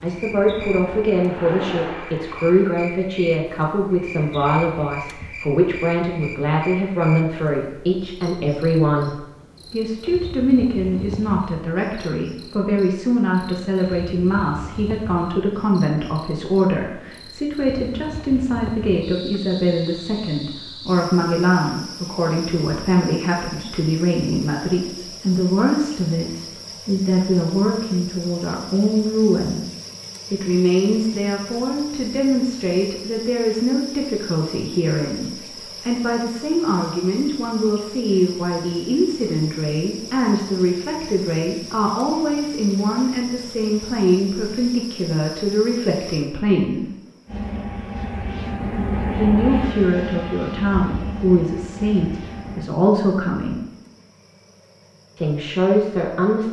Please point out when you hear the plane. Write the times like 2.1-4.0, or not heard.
0.0-2.8, 47.2-52.7.